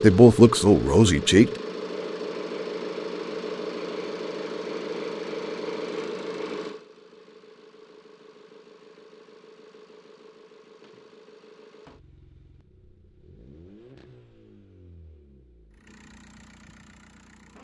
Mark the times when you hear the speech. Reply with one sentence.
You can hear the speech from 0.0 to 1.5 s.